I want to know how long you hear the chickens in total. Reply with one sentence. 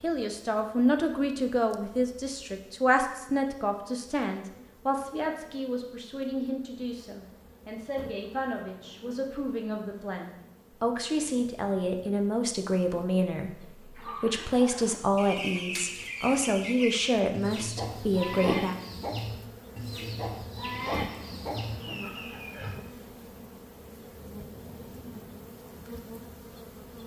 You can hear the chickens for 9 seconds altogether.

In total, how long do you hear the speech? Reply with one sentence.
You can hear the speech for 19 seconds altogether.